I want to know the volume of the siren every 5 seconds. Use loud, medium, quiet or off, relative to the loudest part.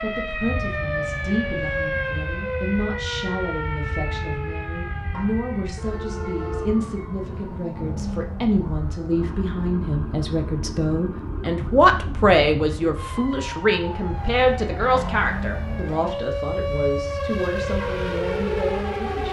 loud, medium, medium, loud.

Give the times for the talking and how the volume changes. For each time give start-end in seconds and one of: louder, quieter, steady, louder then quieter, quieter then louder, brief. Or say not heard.
0.0-19.2 louder then quieter.